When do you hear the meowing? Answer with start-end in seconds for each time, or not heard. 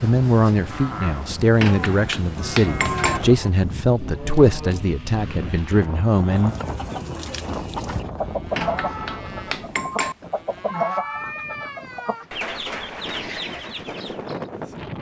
10.7-12.3.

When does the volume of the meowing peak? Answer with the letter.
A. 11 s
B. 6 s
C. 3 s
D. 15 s
A.